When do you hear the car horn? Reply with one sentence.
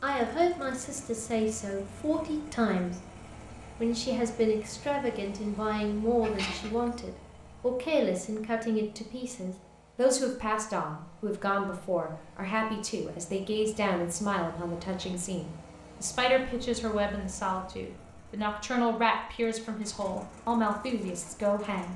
You can hear the car horn from 6.2 to 7.0 s.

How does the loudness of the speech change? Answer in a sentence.
The volume of the speech stays about the same.